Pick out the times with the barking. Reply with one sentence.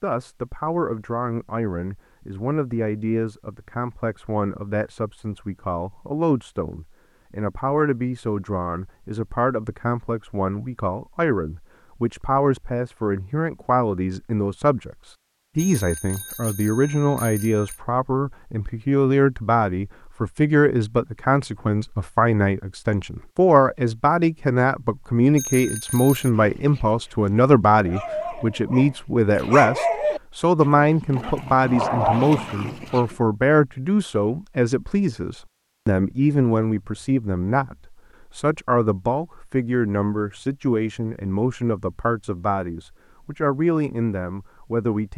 You can hear the barking from 26.3 to 33.1 s.